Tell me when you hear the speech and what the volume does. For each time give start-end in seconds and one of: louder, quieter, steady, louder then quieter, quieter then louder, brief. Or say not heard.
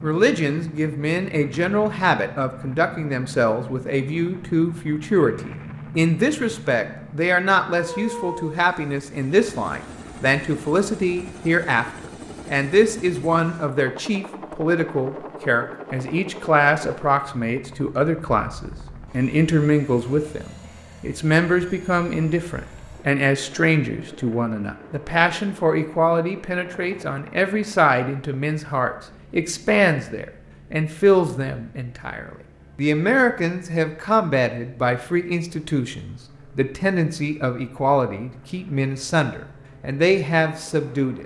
0.0-41.2 steady.